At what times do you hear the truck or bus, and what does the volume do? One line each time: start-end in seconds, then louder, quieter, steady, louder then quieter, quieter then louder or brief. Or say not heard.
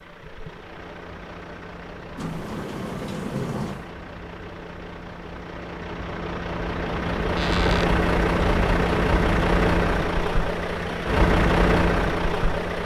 0.0-12.8 louder.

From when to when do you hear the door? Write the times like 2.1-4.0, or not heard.
2.1-4.0, 7.3-8.0.